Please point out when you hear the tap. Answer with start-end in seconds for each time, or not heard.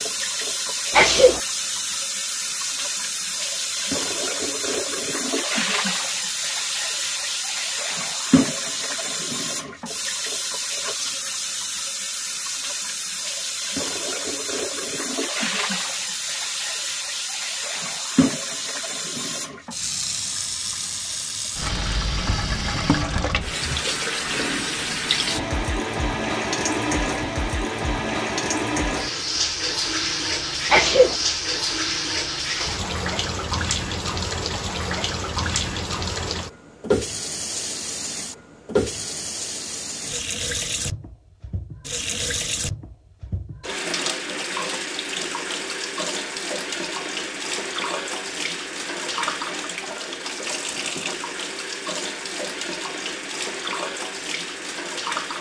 0.0-55.3.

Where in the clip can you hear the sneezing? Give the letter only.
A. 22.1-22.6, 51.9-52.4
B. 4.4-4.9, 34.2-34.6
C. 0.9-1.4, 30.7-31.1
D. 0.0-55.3
C.